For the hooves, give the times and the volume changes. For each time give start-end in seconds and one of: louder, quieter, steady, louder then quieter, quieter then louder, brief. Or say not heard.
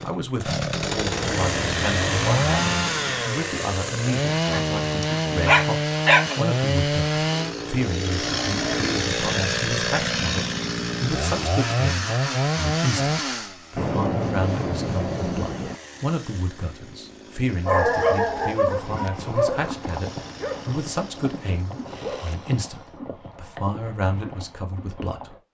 18.6-25.4 quieter.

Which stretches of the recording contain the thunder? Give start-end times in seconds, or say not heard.
1.2-3.2, 13.8-15.8.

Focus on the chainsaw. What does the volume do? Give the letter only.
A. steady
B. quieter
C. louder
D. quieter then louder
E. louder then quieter
B.